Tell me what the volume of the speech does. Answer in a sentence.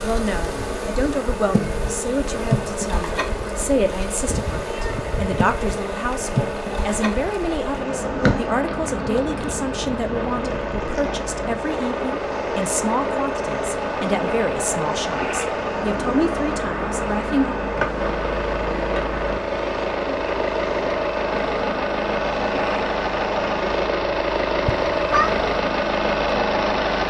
The loudness of the speech stays about the same.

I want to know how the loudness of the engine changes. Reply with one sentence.
The volume of the engine goes up.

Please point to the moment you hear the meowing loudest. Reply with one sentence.
The volume of the meowing peaks at 25 seconds.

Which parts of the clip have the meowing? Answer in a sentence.
The meowing can be heard from 4.2 to 5.5 s and from 24.6 to 25.6 s.